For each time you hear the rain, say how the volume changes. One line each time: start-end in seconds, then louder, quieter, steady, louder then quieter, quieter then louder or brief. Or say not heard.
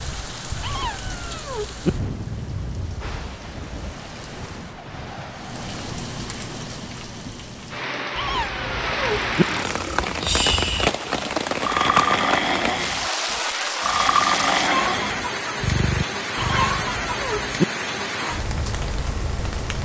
0.0-19.8 louder.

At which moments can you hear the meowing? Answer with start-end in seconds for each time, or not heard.
0.6-1.9, 8.2-9.4, 16.4-17.6.